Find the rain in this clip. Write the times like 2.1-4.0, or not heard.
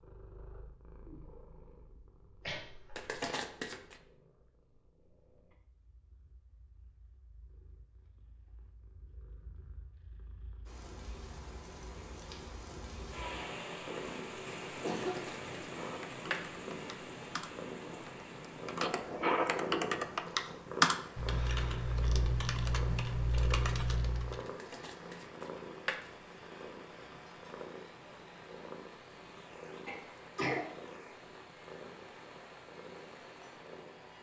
10.7-34.1.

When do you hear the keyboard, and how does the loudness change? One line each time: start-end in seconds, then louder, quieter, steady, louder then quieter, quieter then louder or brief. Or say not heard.
15.7-24.4 louder then quieter.